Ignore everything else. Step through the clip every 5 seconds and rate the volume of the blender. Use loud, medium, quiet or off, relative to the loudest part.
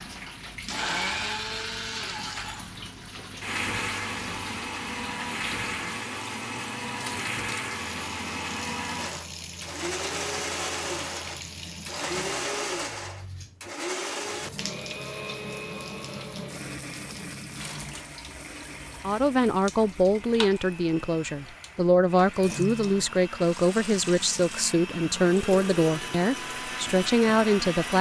loud, loud, loud, medium, medium, loud.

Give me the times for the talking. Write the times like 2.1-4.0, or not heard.
19.0-27.9.